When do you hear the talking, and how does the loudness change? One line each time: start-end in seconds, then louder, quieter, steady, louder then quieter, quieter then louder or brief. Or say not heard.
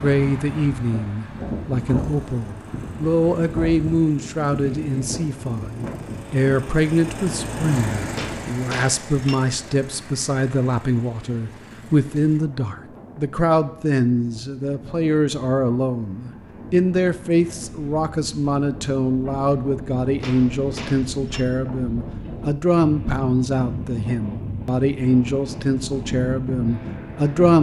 0.0-27.5 steady.